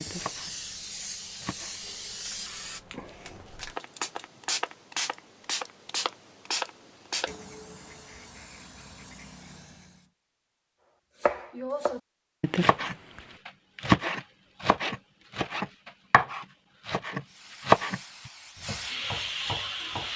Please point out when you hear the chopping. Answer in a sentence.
The chopping can be heard from 0.0 to 1.8 s and from 11.2 to 20.1 s.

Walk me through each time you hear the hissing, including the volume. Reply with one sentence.
The hissing can be heard from 0.0 to 10.1 s, getting louder then quieter; and briefly from 17.2 to 20.1 s.